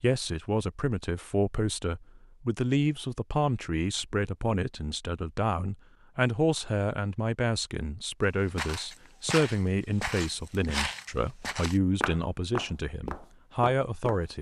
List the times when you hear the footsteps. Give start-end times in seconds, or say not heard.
8.4-14.2.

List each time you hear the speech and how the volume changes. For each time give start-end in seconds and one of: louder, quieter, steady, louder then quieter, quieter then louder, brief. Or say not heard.
0.0-14.3 steady.